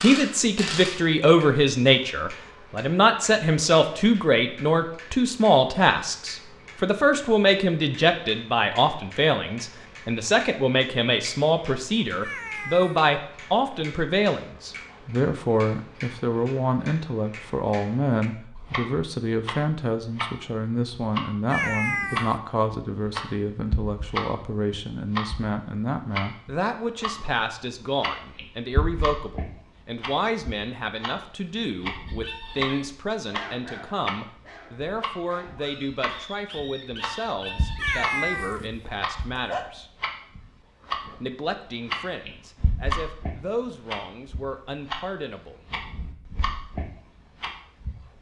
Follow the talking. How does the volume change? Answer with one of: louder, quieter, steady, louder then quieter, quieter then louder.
quieter.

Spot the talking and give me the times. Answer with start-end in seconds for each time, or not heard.
0.0-39.9, 41.1-45.6.